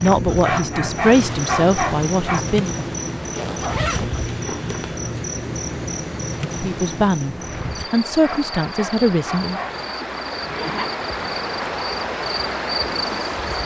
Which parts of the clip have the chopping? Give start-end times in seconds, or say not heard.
not heard.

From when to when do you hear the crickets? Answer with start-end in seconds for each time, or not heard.
0.0-13.6.